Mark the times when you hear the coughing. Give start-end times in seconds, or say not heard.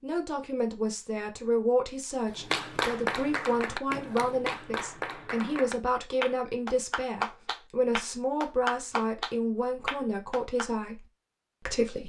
not heard.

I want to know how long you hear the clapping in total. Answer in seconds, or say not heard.
8 s.